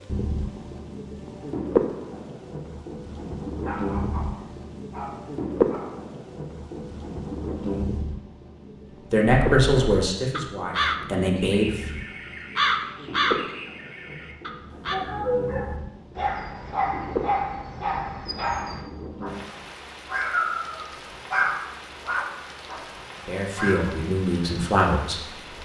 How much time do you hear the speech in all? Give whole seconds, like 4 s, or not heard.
5 s.